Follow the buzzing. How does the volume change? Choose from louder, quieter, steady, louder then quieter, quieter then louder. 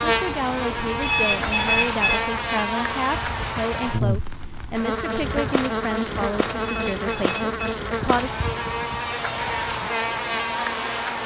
steady.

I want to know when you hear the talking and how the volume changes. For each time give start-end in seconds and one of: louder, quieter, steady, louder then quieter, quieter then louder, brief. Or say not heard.
0.0-8.3 steady.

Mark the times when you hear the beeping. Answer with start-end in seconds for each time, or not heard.
1.0-2.2, 6.5-7.5.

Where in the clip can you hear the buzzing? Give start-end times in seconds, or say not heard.
0.0-11.2.